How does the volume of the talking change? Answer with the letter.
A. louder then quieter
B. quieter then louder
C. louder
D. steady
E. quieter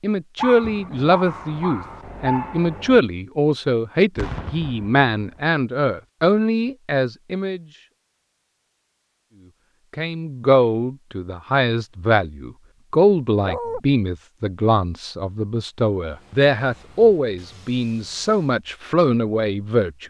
D.